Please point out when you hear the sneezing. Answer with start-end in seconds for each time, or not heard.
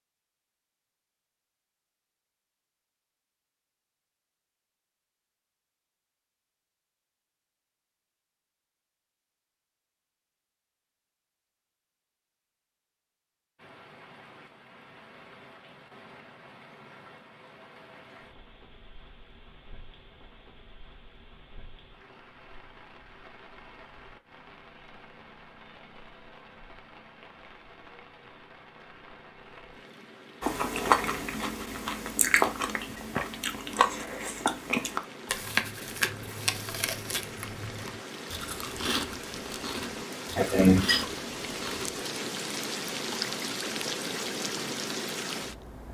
40.4-41.0.